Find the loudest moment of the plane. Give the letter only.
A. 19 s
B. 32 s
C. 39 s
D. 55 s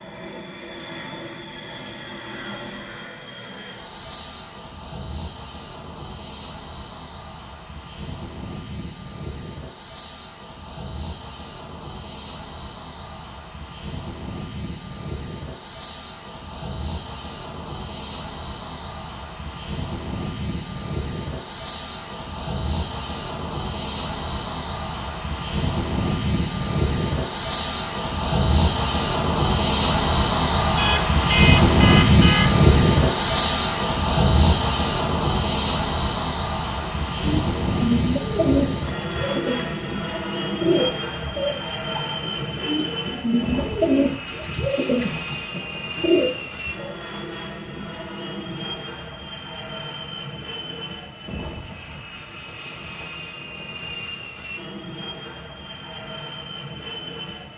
B.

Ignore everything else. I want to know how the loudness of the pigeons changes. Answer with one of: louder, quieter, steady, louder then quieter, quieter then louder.
quieter then louder.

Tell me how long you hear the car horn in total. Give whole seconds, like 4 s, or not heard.
2 s.